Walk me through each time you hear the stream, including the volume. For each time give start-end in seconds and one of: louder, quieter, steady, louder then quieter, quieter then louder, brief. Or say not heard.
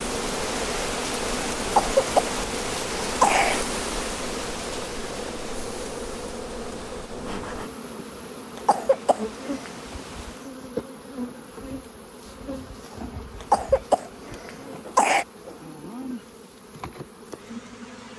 0.0-10.6 quieter.